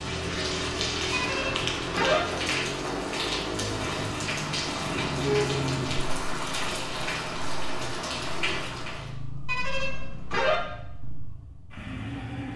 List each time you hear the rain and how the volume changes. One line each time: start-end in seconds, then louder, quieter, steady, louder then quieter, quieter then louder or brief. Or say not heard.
0.0-9.1 steady.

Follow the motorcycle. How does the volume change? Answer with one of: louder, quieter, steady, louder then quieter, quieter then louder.
quieter.